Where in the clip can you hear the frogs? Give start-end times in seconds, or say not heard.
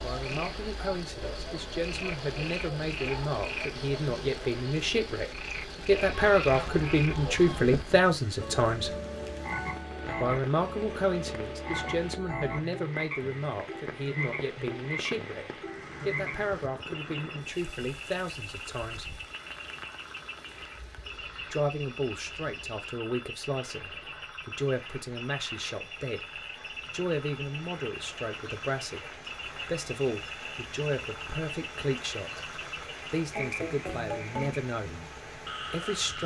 0.0-36.2.